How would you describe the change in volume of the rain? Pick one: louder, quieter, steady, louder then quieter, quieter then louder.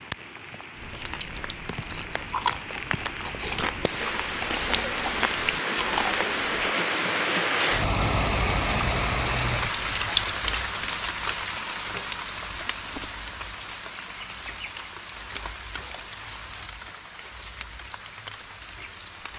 louder then quieter.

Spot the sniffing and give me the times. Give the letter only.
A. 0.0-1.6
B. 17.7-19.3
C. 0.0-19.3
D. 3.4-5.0
D.